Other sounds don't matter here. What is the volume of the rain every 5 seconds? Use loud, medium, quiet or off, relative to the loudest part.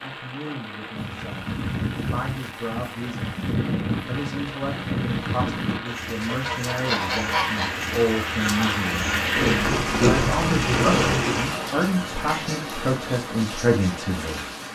medium, loud, loud.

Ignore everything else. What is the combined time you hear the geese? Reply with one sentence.
The geese can be heard for 8 seconds in total.